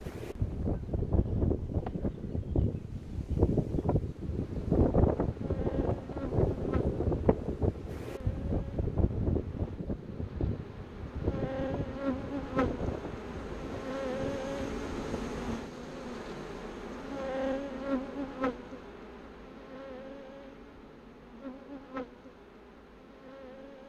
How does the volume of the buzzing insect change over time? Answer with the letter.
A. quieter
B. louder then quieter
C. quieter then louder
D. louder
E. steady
B.